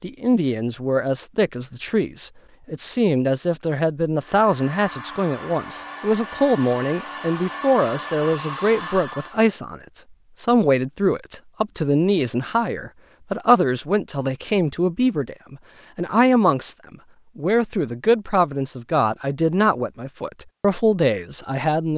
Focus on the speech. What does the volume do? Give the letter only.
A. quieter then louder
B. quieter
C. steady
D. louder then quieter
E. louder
C.